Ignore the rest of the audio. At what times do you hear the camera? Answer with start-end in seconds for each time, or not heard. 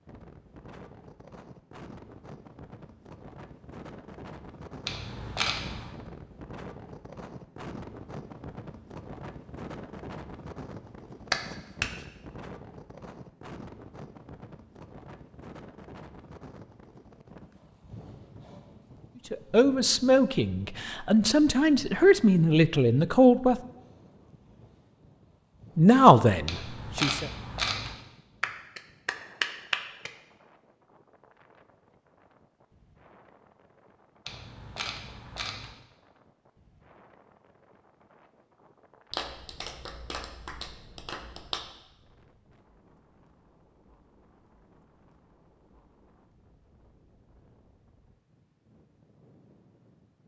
4.8-6.0, 26.4-27.9, 34.2-35.7.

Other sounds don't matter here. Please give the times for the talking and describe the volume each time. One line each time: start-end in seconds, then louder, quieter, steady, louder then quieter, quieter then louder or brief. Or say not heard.
19.3-23.6 quieter then louder
25.8-27.3 brief.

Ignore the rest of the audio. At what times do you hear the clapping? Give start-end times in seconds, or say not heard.
11.3-12.1, 28.4-30.1, 39.1-41.6.